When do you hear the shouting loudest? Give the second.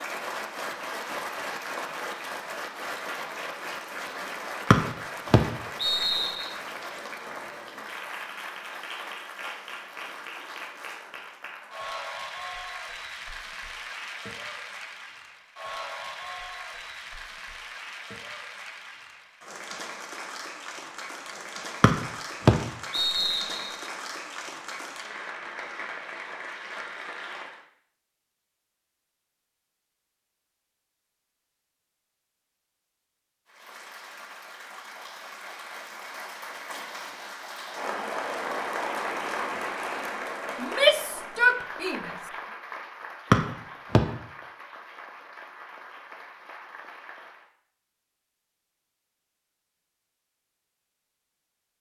41 s.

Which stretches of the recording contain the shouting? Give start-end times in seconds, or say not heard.
40.6-42.1.